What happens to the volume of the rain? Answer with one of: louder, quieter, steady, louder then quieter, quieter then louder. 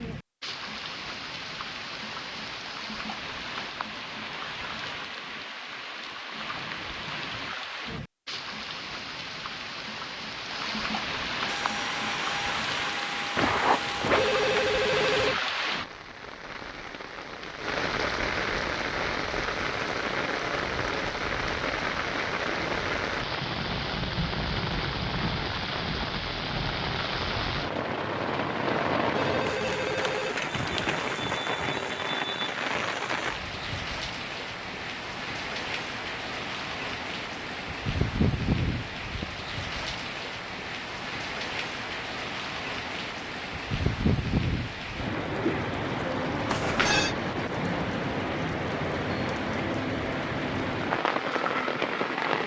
louder.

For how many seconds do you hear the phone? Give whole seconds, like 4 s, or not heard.
5 s.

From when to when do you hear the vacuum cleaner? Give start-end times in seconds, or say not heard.
11.4-15.3.